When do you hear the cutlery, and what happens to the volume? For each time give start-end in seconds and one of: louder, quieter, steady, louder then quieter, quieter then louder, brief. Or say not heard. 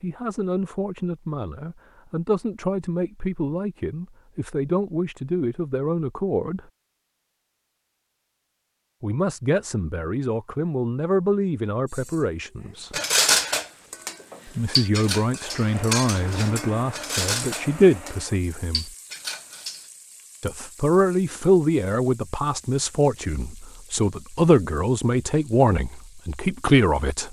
12.9-19.9 quieter.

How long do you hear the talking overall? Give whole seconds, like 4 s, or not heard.
22 s.